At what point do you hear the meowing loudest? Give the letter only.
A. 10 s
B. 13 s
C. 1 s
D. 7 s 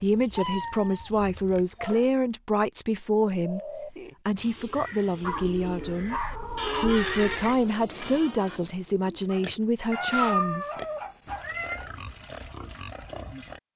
A.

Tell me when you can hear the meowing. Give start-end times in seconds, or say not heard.
0.2-1.2, 5.2-7.4, 9.9-11.8.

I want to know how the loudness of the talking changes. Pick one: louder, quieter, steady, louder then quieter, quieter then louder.
steady.